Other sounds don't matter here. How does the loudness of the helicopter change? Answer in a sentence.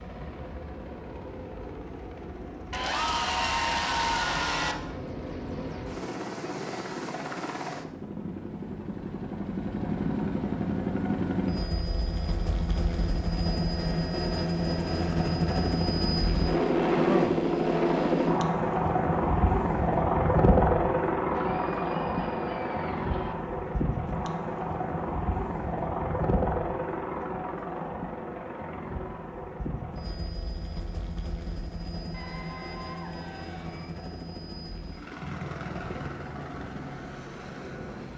The volume of the helicopter goes up, then down.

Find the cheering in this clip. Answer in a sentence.
You can hear the cheering from 2.7 to 4.8 s, from 21.3 to 23.4 s and from 32.1 to 34.0 s.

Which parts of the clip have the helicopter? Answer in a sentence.
The helicopter can be heard from 0.0 to 38.1 s.